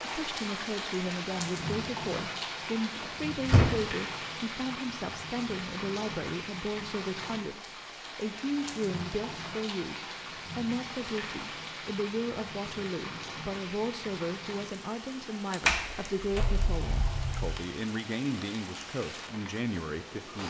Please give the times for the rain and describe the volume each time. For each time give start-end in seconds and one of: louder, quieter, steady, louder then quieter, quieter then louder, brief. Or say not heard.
0.0-20.4 quieter.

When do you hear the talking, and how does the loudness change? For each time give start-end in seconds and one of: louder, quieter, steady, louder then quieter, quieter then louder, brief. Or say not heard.
0.0-20.4 steady.